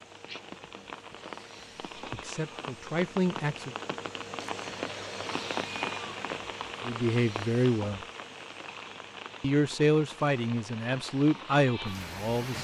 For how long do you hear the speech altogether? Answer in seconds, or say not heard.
6 s.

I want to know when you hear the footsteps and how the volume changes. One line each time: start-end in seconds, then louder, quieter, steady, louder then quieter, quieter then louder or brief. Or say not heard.
not heard.